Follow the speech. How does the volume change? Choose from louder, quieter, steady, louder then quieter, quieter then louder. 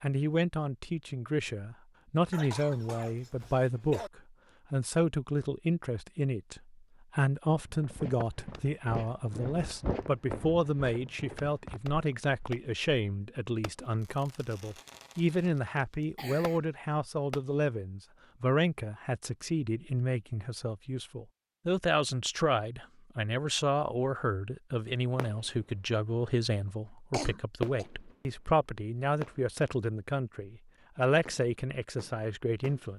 steady.